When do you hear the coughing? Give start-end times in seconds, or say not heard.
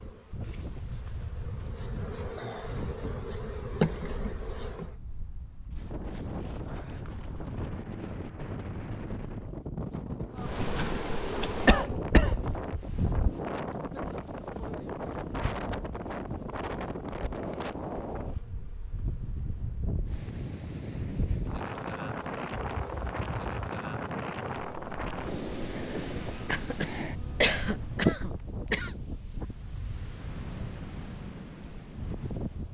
11.7-12.3, 26.4-28.9.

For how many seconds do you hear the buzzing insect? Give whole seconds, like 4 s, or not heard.
23 s.